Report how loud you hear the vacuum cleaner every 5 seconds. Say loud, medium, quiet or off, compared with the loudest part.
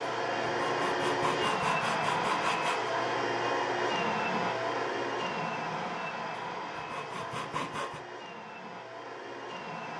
loud, medium.